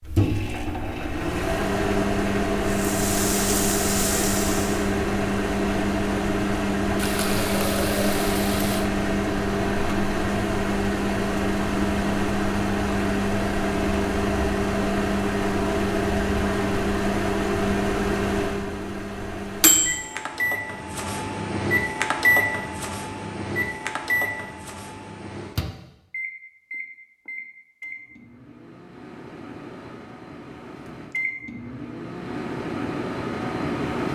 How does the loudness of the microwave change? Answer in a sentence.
The loudness of the microwave goes down.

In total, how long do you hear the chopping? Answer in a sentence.
You can't hear the chopping here.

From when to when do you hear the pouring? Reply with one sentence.
The pouring can be heard from 7.0 to 8.9 s.